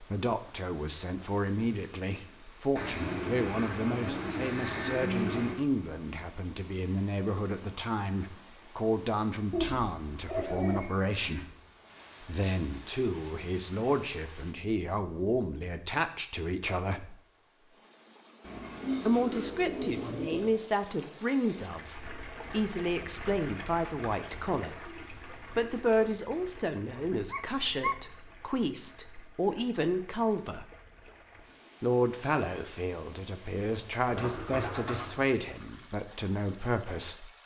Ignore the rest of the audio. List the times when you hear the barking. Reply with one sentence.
The barking can be heard from 27.3 to 27.9 s.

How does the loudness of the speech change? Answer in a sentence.
The volume of the speech stays about the same.